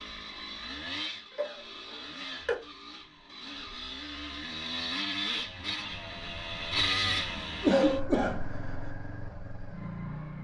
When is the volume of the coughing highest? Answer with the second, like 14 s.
8 s.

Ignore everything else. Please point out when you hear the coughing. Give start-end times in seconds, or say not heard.
1.4-2.6, 7.6-8.4.